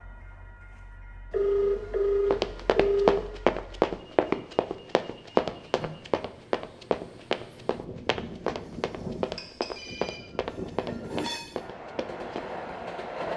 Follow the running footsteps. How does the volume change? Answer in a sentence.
The volume of the running footsteps goes down.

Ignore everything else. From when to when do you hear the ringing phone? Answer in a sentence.
The ringing phone can be heard from 1.3 to 3.2 s and from 9.3 to 10.2 s.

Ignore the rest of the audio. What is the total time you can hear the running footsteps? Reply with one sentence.
You can hear the running footsteps for 10 seconds altogether.